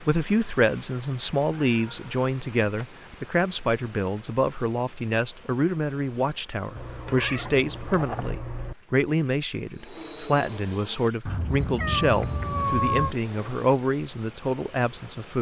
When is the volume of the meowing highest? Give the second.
13 s.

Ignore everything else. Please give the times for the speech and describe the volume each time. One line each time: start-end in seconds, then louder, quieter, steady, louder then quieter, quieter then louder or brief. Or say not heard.
0.0-15.3 steady.